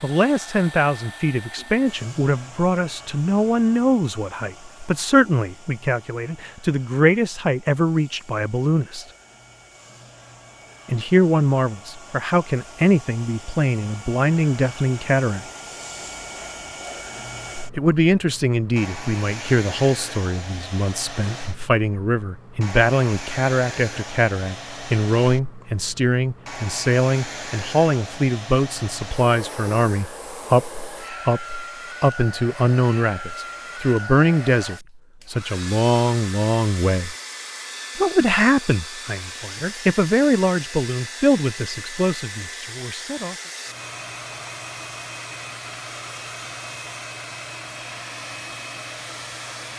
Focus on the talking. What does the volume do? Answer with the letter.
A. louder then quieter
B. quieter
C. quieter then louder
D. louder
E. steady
E.